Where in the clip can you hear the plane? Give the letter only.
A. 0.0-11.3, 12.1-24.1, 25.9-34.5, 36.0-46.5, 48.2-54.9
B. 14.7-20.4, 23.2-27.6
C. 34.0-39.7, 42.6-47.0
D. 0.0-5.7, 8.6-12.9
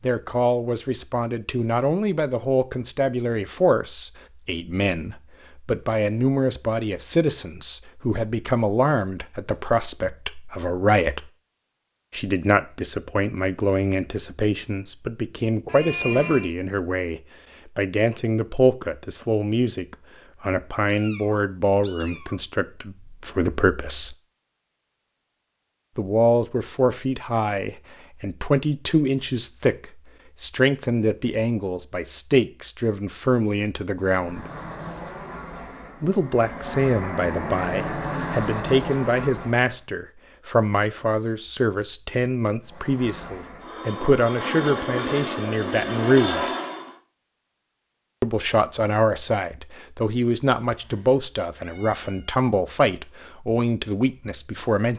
C.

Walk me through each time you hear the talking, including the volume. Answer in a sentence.
The talking can be heard from 0.0 to 11.3 s, at a steady volume; from 12.1 to 24.1 s, at a steady volume; from 25.9 to 34.5 s, at a steady volume; from 36.0 to 46.5 s, at a steady volume; and from 48.2 to 54.9 s, at a steady volume.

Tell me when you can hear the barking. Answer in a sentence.
You can't hear the barking here.